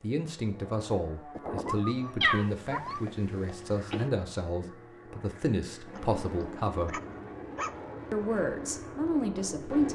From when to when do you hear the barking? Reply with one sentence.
The barking can be heard from 1.4 to 3.0 s and from 5.9 to 7.8 s.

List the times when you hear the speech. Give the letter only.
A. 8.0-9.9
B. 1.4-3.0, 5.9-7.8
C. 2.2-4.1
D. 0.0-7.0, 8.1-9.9
D.